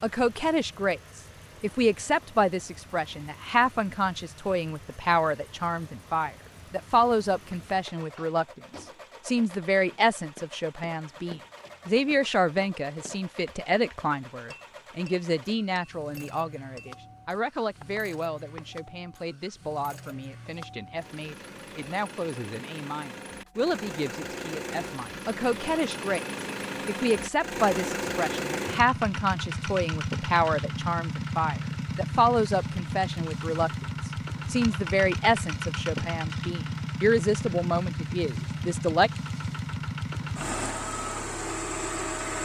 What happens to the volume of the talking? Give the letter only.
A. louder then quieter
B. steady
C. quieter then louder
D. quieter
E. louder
C.